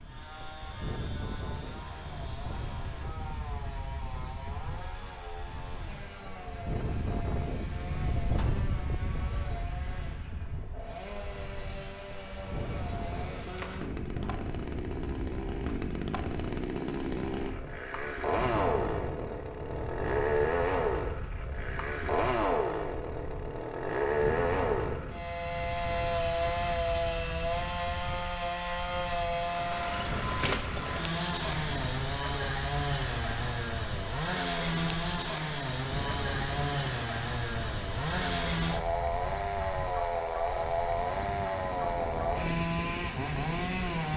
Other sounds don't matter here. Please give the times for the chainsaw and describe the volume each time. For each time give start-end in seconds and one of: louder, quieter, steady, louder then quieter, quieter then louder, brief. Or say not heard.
0.0-44.1 louder.